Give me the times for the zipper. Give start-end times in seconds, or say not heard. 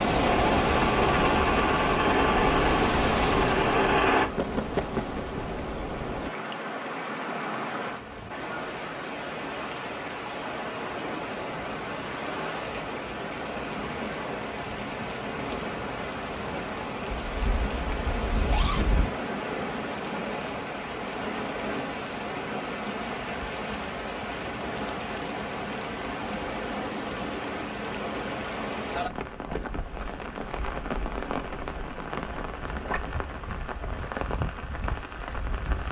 17.2-19.1.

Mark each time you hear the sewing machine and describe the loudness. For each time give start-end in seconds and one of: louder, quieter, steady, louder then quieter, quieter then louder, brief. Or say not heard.
0.0-4.2 steady.